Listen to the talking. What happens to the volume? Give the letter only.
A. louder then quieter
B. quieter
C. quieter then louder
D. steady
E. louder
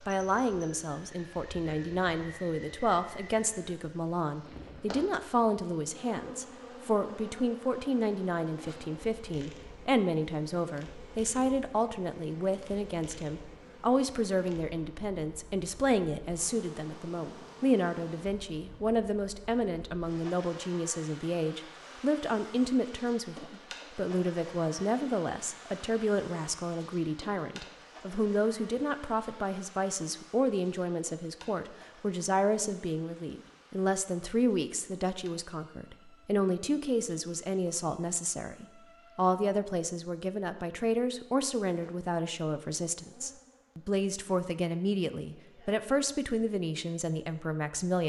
D.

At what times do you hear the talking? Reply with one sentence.
You can hear the talking from 0.0 to 48.0 s.